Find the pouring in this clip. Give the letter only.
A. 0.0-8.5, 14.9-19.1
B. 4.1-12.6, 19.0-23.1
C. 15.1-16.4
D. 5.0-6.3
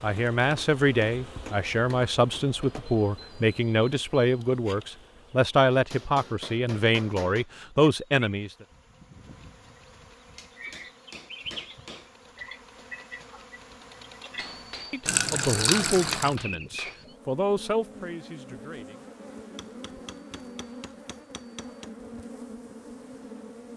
C.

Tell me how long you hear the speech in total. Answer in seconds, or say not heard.
13 s.